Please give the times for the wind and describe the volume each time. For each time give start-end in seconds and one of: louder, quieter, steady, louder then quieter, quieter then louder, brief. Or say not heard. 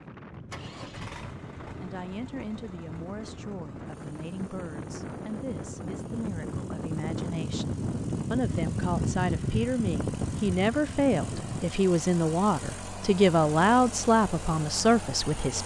0.0-11.8 louder.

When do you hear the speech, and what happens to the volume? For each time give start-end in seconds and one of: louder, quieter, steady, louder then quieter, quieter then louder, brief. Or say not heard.
1.6-15.6 louder.